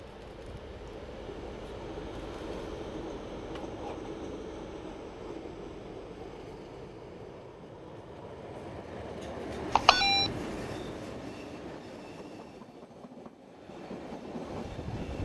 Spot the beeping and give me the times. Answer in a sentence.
The beeping can be heard from 9.8 to 10.3 s.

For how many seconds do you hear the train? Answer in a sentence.
The train can be heard for 15 seconds in total.